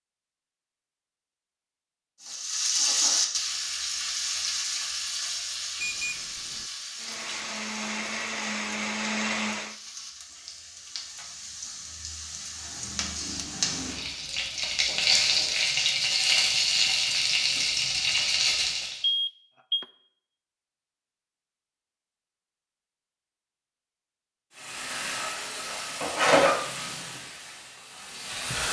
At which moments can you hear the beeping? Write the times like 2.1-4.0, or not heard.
5.8-6.7, 19.0-19.9.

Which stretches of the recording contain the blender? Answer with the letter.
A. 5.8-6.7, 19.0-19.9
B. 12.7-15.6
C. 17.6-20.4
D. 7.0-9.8
D.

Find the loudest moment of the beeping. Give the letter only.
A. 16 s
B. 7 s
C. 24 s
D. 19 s
D.